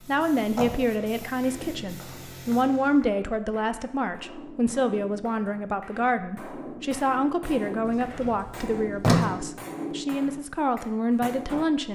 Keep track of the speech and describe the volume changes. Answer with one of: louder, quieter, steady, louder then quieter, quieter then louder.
steady.